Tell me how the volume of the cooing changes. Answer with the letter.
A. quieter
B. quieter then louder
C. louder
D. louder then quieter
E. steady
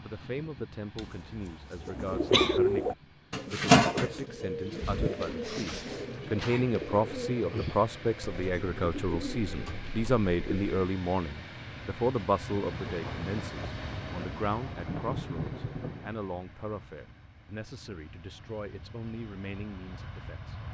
A.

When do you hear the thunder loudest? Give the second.
15 s.